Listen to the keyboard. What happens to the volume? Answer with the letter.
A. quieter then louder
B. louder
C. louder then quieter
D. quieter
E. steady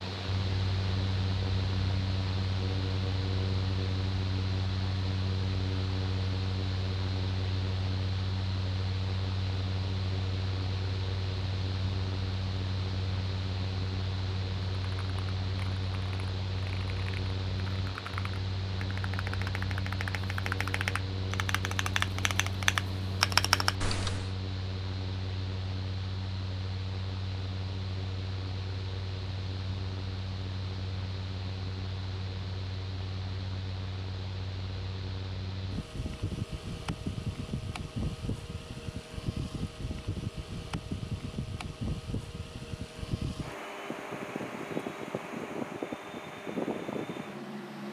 B.